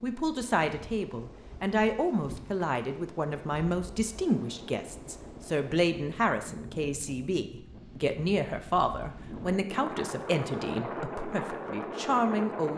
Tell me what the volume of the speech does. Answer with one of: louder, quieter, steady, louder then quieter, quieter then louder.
steady.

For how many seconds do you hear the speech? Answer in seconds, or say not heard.
13 s.